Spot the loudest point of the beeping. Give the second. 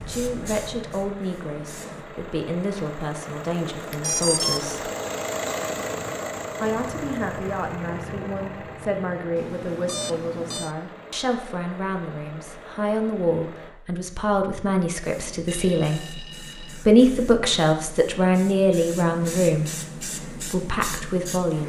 4 s.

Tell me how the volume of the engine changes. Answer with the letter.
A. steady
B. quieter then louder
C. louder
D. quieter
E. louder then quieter
E.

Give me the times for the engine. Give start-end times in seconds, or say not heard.
0.0-13.7.